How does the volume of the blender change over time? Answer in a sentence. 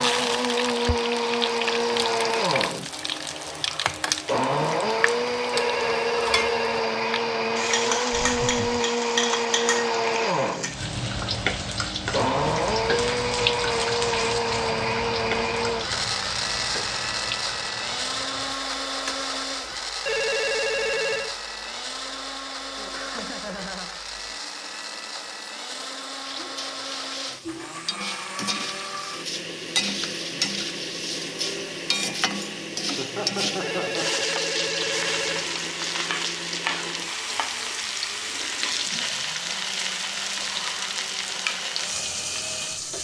The volume of the blender goes down.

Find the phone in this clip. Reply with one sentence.
You can hear the phone from 5.5 to 6.8 s, from 20.1 to 21.4 s and from 33.6 to 35.5 s.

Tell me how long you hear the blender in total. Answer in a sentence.
You can hear the blender for 43 seconds altogether.